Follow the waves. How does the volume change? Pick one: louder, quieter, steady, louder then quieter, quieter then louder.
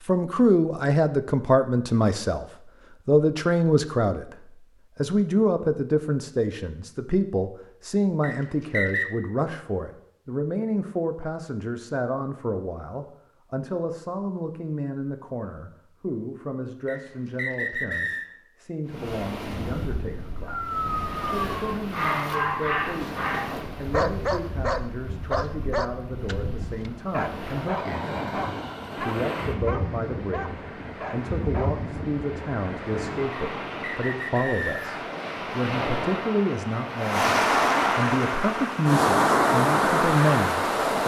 louder.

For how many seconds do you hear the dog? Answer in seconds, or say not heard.
11 s.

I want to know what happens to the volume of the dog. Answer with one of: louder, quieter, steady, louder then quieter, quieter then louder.
quieter.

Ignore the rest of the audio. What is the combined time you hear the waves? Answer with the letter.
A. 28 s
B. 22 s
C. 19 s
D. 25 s
B.